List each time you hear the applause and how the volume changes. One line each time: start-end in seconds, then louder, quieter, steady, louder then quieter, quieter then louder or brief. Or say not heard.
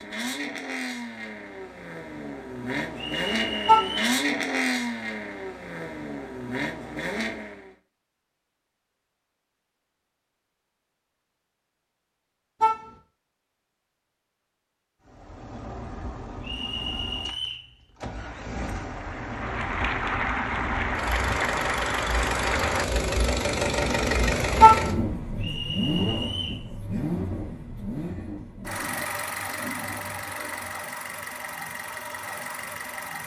18.1-22.9 louder.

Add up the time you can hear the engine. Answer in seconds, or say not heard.
26 s.